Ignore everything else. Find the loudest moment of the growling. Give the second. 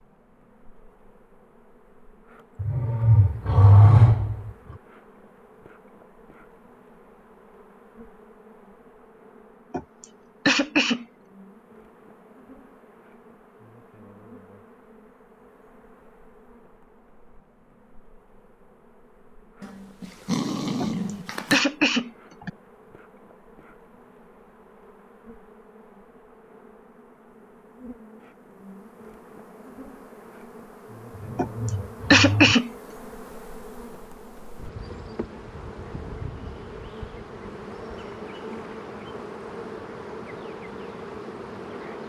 4 s.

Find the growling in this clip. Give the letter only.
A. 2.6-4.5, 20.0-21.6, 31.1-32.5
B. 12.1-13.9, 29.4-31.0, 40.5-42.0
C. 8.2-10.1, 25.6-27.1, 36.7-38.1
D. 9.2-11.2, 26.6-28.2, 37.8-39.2
A.